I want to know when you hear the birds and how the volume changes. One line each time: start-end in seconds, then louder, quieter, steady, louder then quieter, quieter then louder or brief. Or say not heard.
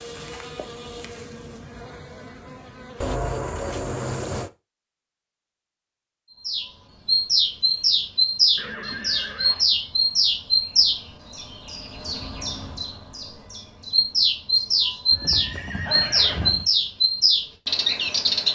6.5-18.4 quieter then louder.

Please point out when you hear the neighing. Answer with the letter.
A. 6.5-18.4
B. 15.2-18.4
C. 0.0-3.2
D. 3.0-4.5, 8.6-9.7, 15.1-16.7
D.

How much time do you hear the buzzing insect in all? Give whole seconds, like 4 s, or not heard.
3 s.